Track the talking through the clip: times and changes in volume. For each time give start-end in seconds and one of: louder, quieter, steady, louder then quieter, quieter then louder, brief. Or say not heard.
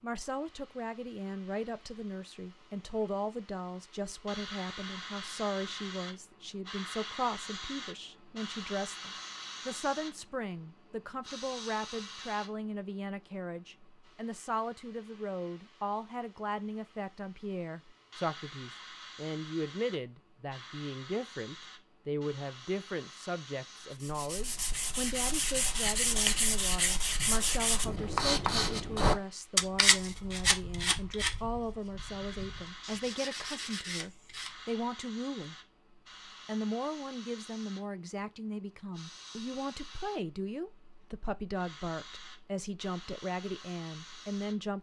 0.0-35.5 steady
36.5-44.7 steady.